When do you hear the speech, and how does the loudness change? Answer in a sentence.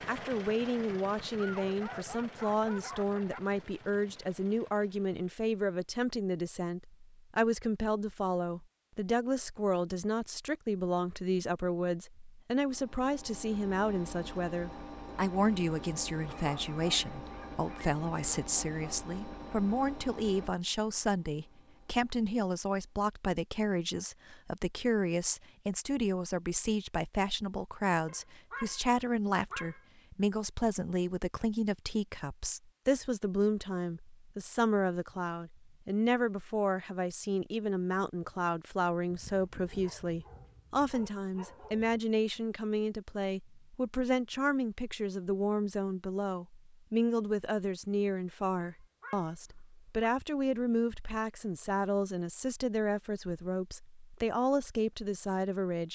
You can hear the speech from 0.1 to 55.9 s, at a steady volume.